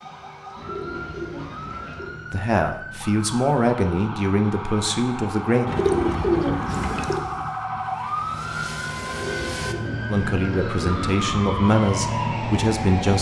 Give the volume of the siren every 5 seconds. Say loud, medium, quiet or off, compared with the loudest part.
medium, loud, loud.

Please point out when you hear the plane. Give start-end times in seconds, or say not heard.
6.7-9.8.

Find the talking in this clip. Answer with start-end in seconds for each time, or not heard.
2.3-5.7, 10.1-13.1.